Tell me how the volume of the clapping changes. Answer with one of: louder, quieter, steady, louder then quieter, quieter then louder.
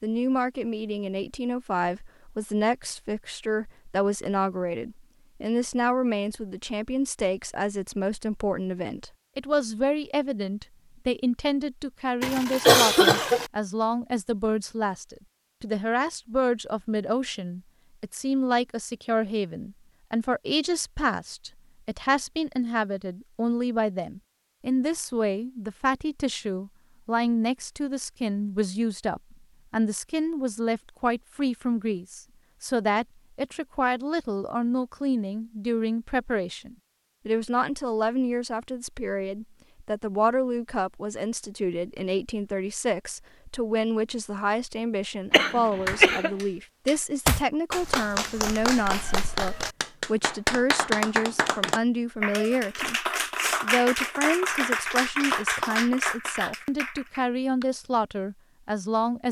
steady.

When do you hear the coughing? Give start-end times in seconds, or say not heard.
12.2-13.5, 45.3-46.3.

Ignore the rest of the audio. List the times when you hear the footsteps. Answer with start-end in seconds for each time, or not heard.
not heard.